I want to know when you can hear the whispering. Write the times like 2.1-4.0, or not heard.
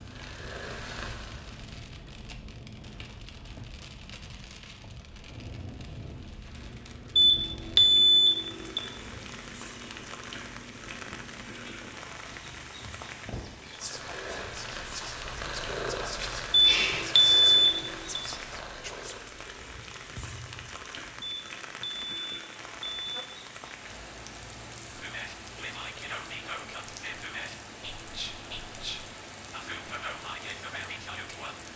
13.3-19.2, 24.9-31.6.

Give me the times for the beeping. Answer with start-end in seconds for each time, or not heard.
7.2-8.8, 16.5-18.2, 21.2-23.2.